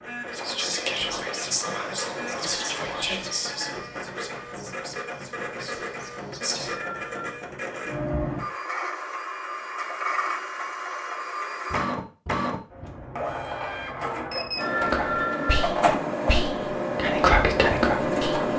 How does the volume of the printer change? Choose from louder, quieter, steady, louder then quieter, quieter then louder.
louder.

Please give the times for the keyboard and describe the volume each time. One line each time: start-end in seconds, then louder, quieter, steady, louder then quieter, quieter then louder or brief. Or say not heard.
not heard.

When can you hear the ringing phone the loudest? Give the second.
15 s.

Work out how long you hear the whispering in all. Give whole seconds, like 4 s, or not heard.
10 s.